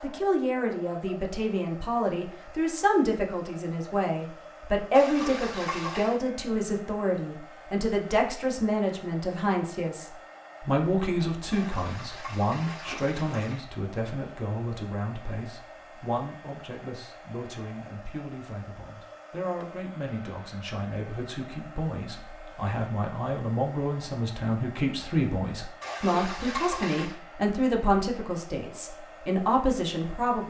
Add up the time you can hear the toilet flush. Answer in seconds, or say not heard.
5 s.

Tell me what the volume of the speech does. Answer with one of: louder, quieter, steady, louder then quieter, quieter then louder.
quieter then louder.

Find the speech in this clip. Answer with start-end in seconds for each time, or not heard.
0.0-30.4.